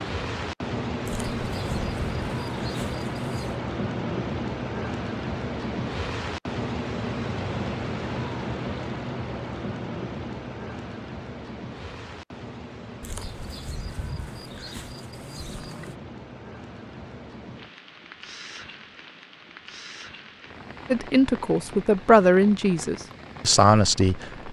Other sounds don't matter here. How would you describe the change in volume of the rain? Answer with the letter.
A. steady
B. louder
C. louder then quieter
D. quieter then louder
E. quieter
E.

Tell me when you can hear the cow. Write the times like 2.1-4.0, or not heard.
1.1-3.5, 13.0-15.9.